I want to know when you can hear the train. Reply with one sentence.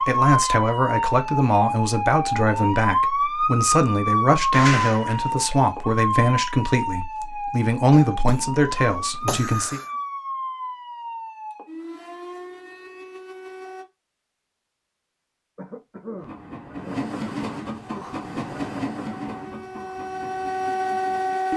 The train can be heard from 16.1 to 21.5 s.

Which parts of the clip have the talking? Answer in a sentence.
You can hear the talking from 0.0 to 9.8 s.